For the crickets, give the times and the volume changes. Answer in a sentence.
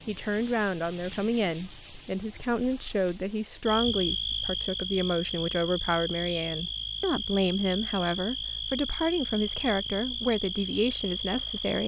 The crickets can be heard from 0.0 to 11.8 s, getting quieter.